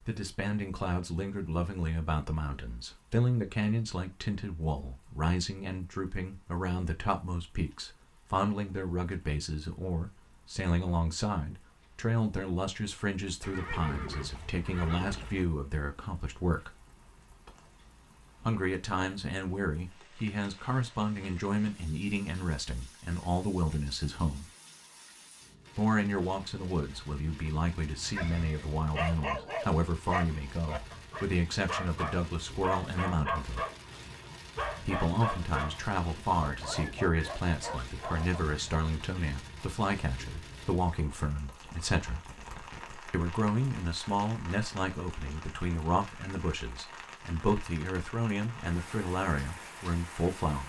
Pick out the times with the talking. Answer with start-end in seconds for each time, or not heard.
0.1-16.7, 18.4-24.4, 25.8-33.6, 34.8-42.2, 43.1-50.6.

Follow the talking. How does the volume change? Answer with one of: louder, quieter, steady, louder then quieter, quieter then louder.
steady.